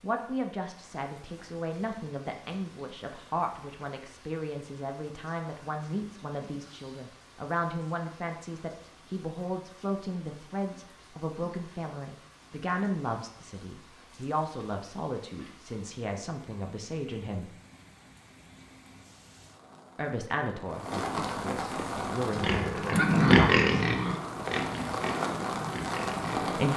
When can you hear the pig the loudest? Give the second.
23 s.